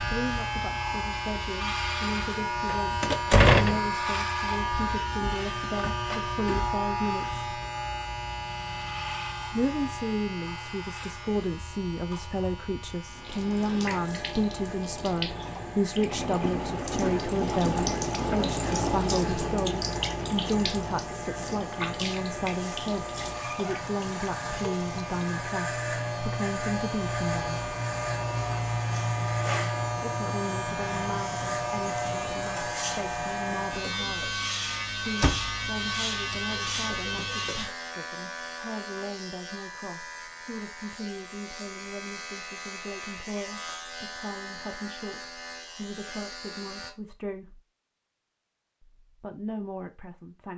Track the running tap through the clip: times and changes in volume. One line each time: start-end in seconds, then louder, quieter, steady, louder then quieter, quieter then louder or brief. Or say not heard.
13.1-25.4 louder then quieter.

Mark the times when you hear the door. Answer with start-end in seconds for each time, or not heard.
3.0-3.9, 35.2-36.4.